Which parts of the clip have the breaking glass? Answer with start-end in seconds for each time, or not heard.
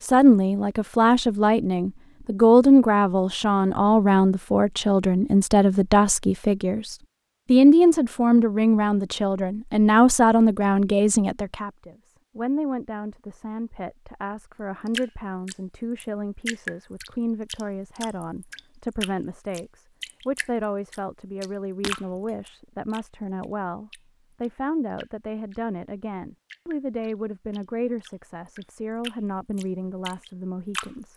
21.8-22.4.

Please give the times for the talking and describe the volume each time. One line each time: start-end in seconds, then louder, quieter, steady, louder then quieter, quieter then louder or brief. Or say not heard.
0.0-31.1 quieter.